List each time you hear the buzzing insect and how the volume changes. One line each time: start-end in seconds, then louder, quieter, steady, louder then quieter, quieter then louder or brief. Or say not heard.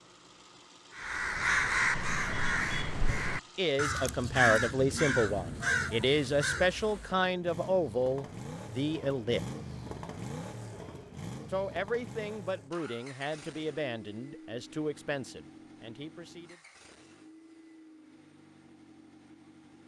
not heard.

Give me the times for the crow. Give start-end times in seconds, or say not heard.
0.9-6.8.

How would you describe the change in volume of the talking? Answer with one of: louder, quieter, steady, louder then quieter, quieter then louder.
quieter.